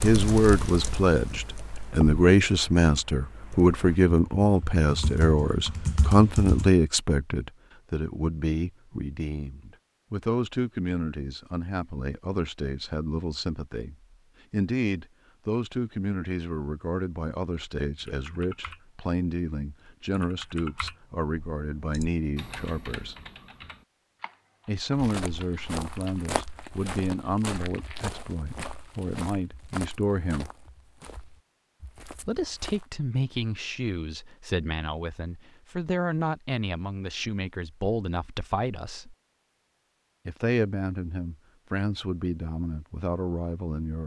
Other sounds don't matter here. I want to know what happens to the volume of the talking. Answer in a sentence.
The loudness of the talking goes down.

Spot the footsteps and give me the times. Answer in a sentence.
The footsteps can be heard from 24.9 to 32.9 s.